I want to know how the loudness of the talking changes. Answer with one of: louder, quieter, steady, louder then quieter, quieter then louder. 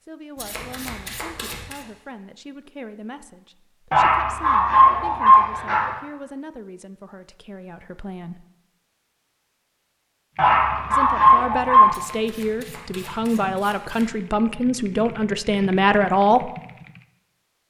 louder.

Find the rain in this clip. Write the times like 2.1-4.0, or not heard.
not heard.